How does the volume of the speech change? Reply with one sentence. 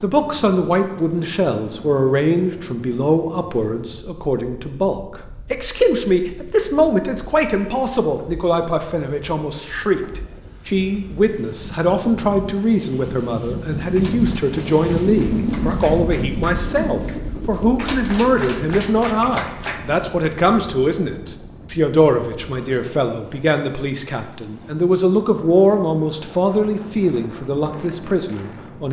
The loudness of the speech stays about the same.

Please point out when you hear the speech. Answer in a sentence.
The speech can be heard from 0.0 to 28.8 s.